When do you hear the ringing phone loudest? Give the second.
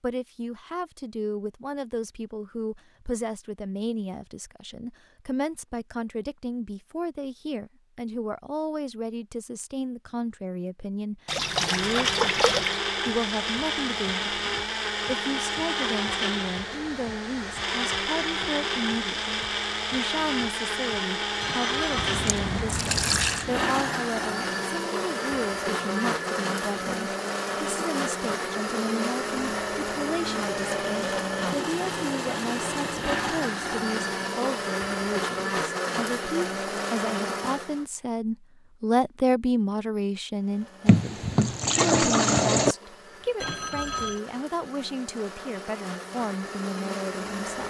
44 s.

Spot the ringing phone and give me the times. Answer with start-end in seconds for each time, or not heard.
21.4-22.1, 43.4-44.2.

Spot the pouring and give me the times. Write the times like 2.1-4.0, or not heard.
11.2-12.8, 21.9-23.4, 40.9-42.8.